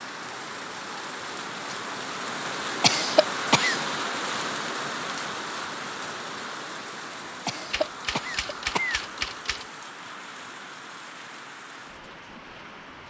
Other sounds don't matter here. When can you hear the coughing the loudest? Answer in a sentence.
The volume of the coughing peaks at 3 seconds.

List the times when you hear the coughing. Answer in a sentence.
The coughing can be heard from 2.8 to 3.8 s and from 7.5 to 9.1 s.